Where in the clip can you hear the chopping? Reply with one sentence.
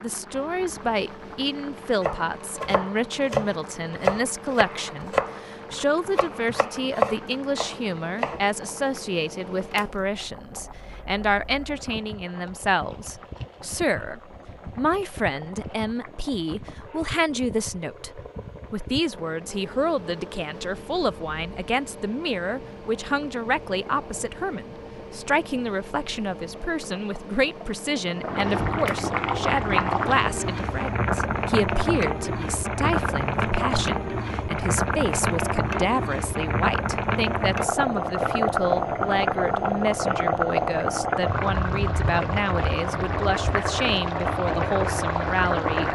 The chopping can be heard from 2.0 to 8.4 s.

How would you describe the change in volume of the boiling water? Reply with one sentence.
The loudness of the boiling water goes up.